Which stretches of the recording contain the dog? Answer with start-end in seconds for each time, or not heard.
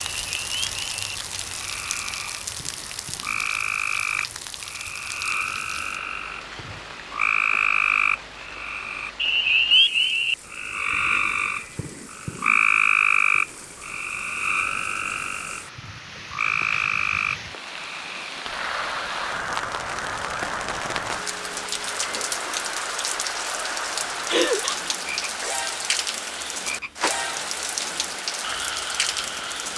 not heard.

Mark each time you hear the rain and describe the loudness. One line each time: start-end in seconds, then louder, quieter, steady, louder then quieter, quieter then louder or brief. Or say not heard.
0.0-29.7 quieter then louder.